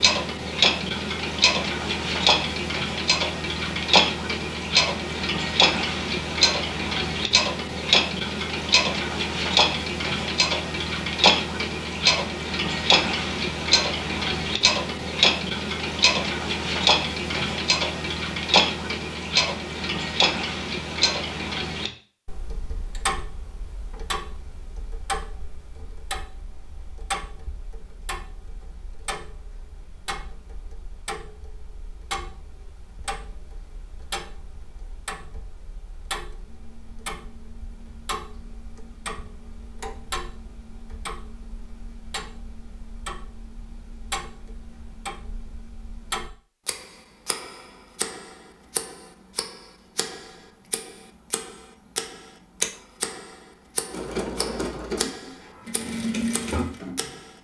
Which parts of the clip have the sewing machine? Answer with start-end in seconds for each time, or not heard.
53.9-57.1.